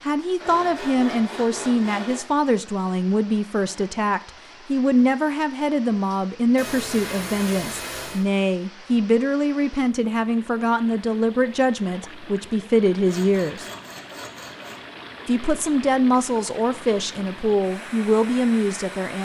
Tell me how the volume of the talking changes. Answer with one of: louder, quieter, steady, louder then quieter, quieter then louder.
steady.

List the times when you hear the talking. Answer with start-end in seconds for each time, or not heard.
0.0-13.7, 15.2-19.1.